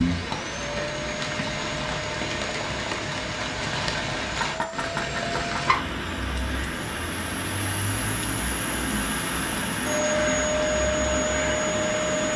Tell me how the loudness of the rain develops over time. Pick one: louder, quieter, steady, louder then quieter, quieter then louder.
steady.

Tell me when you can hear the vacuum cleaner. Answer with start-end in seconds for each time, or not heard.
0.0-12.3.